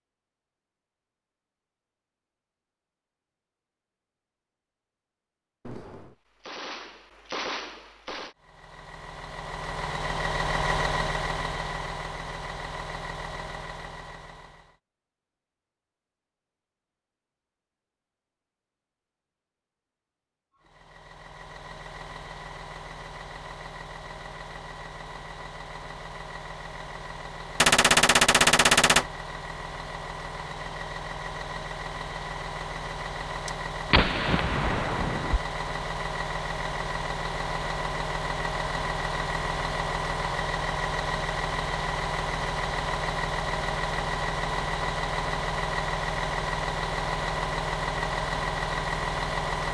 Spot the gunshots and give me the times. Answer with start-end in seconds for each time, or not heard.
5.7-8.3, 27.6-29.1, 33.5-35.4.